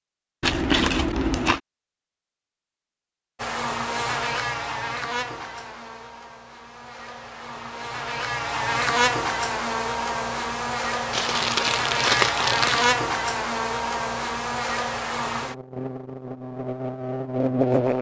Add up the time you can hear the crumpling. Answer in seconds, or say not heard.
3 s.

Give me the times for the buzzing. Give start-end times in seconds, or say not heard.
3.4-17.9.